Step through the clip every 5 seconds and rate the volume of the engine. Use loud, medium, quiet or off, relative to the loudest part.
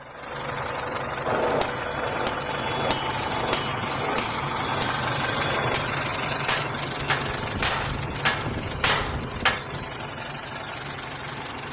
loud, loud, medium.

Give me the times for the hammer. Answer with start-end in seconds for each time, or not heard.
1.2-9.6.